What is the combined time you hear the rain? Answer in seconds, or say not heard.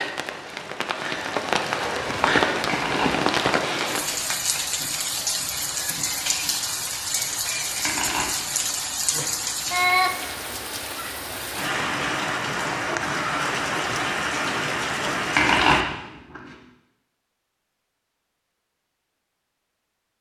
16 s.